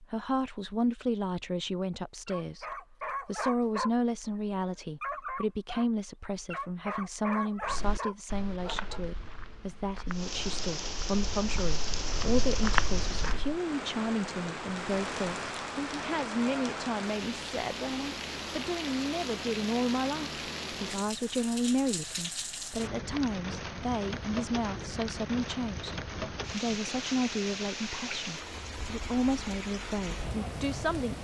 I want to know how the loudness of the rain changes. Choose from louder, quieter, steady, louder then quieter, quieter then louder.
steady.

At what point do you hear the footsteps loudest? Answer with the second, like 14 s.
13 s.